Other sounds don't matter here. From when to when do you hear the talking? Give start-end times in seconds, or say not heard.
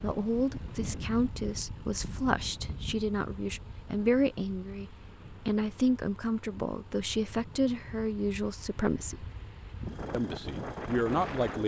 0.0-9.2, 10.1-11.6.